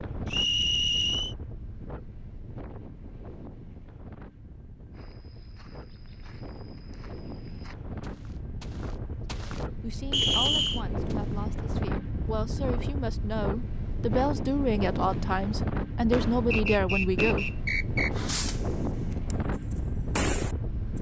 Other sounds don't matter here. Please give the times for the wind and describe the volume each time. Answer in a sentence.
You can hear the wind from 0.0 to 20.9 s, getting louder.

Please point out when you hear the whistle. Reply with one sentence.
You can hear the whistle from 0.2 to 1.4 s, from 10.1 to 10.8 s and from 16.5 to 18.1 s.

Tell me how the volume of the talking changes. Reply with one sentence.
The volume of the talking goes up.